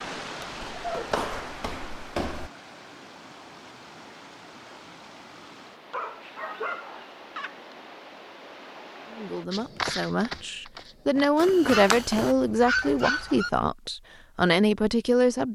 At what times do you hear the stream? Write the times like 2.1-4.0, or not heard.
0.0-9.4.